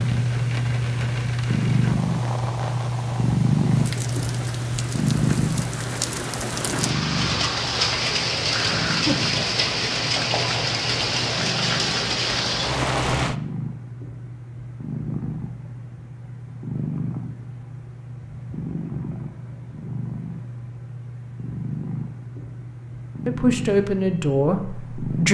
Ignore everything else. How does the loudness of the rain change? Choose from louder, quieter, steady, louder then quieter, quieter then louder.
louder.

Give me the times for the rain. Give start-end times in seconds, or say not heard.
0.0-13.3.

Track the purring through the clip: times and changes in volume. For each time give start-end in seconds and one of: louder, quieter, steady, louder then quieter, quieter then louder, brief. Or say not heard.
0.0-25.2 quieter.